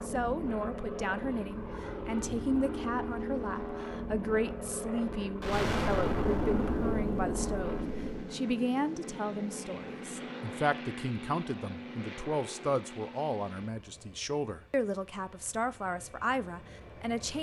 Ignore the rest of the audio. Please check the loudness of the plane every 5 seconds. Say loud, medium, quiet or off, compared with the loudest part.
loud, loud, medium, quiet.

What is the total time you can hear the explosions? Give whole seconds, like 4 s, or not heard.
3 s.